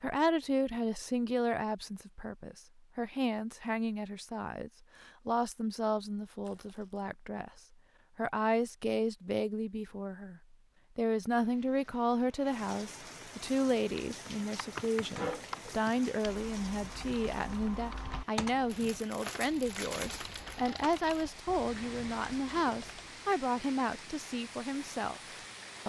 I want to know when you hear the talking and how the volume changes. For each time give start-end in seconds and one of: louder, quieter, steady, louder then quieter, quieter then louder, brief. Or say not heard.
0.0-25.8 steady.